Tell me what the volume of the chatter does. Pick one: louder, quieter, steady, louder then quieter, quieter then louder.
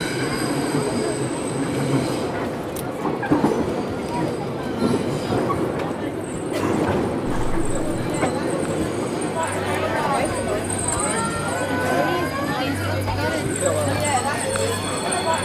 louder.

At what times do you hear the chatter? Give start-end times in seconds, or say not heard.
0.1-15.4.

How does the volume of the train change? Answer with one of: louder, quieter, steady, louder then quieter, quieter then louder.
quieter.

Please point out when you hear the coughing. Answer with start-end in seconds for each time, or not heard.
7.2-8.3.